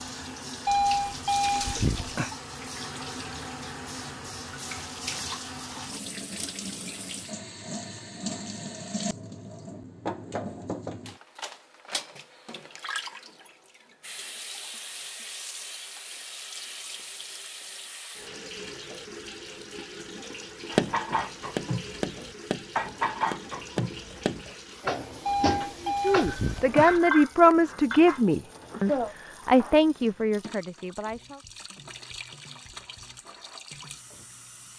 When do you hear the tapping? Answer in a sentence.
You can hear the tapping from 20.8 to 26.3 s.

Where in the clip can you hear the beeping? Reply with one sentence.
You can hear the beeping from 0.7 to 2.3 s and from 25.2 to 27.0 s.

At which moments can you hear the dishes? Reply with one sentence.
You can hear the dishes from 20.7 to 29.1 s.